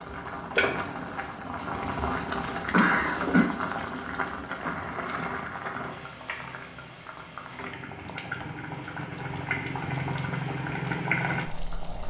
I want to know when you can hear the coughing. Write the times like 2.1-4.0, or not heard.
2.7-3.5.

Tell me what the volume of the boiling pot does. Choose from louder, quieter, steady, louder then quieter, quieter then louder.
quieter then louder.